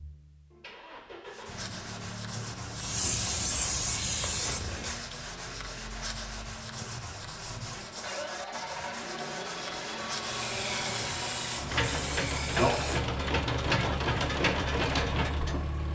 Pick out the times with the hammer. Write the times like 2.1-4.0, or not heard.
not heard.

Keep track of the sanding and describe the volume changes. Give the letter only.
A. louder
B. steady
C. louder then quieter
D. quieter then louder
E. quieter
B.